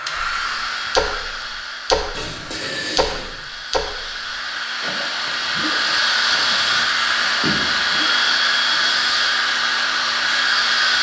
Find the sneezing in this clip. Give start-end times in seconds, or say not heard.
not heard.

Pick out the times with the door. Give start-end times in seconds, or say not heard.
2.1-3.4, 7.4-9.1.